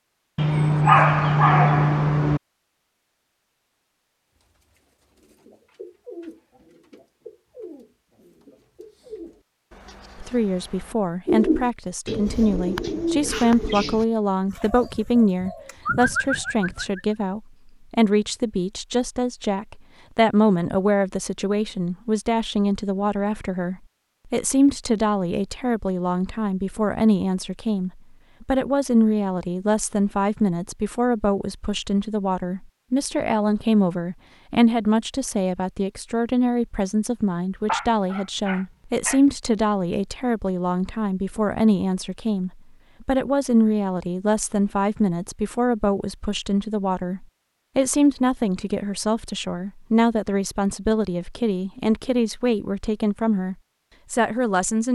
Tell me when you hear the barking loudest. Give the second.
1 s.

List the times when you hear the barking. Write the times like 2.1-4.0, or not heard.
0.3-2.4, 37.6-39.2.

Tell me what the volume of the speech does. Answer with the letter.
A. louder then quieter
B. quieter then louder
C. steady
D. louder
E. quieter
C.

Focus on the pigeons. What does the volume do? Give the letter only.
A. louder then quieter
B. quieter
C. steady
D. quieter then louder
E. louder
E.